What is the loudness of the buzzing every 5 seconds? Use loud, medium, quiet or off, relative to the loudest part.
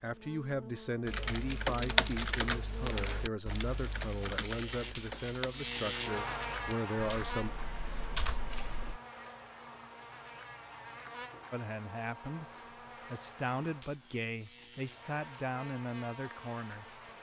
medium, loud, medium, medium.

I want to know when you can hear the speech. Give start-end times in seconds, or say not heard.
0.0-7.5, 11.5-16.9.